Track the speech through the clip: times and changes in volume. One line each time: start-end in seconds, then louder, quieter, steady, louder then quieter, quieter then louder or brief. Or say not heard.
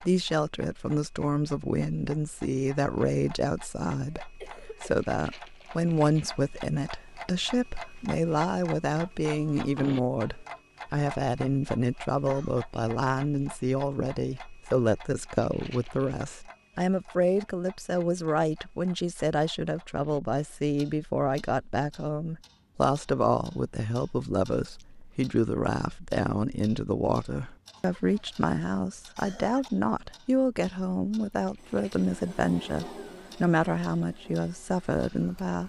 0.0-35.6 steady.